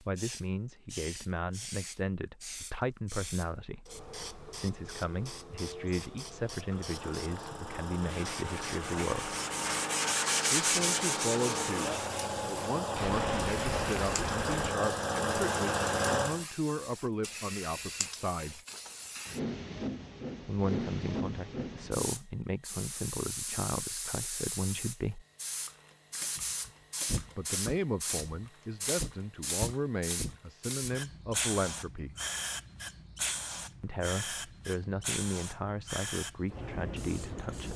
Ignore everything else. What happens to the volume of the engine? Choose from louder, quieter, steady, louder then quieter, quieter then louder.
louder.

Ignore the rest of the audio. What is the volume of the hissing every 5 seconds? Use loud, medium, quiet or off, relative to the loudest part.
medium, medium, medium, loud, loud, loud, loud, loud.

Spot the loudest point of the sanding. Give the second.
11 s.